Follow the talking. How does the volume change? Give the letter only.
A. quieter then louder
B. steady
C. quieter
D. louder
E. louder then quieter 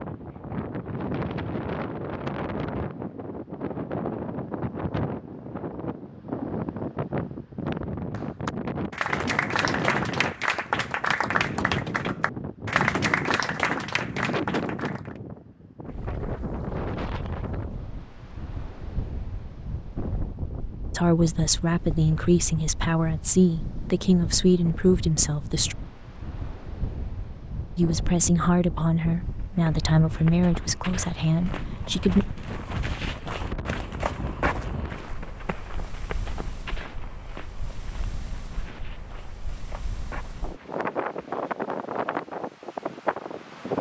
B.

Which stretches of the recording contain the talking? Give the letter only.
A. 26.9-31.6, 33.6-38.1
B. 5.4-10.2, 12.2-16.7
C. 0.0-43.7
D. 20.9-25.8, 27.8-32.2
D.